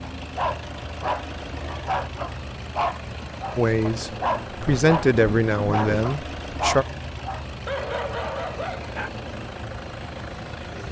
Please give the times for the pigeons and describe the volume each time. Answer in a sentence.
You can't hear the pigeons here.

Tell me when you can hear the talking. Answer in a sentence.
You can hear the talking from 3.5 to 6.8 s.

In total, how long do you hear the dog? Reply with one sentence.
The dog can be heard for 9 seconds in total.